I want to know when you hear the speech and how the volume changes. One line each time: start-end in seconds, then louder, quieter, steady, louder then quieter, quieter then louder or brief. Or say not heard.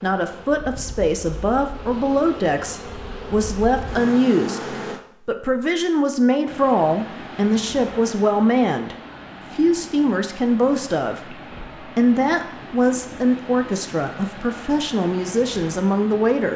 0.0-16.5 steady.